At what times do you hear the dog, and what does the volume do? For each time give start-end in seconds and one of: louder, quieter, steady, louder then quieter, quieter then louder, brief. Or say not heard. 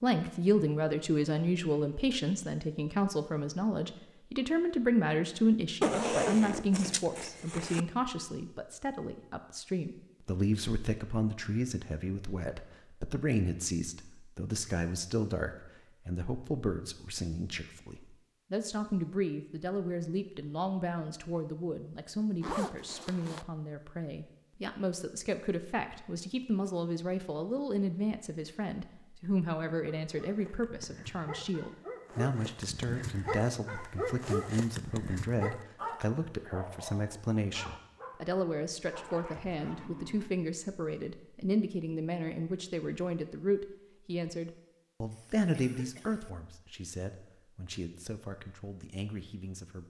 29.9-40.4 louder then quieter.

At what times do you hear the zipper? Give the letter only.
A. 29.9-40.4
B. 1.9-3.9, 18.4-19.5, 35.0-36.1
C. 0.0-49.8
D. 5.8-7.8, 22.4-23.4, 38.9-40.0
D.